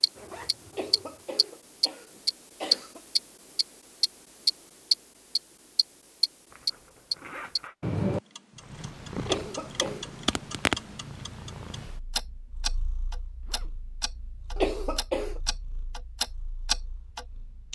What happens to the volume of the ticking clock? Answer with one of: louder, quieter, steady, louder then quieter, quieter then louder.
quieter then louder.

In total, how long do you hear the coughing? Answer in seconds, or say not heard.
4 s.